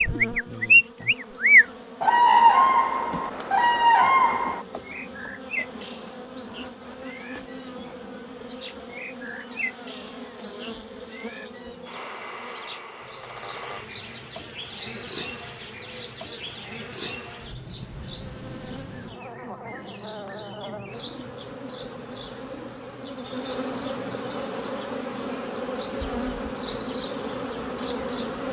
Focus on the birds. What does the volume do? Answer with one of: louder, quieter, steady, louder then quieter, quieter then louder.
quieter.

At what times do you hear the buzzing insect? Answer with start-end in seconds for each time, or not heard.
0.0-28.4.